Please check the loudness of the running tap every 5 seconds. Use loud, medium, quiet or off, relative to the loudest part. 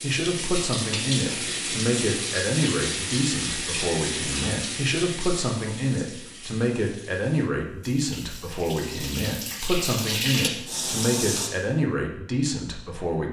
loud, medium, loud.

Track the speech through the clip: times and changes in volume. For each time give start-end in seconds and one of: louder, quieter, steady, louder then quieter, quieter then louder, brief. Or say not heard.
0.0-13.2 steady.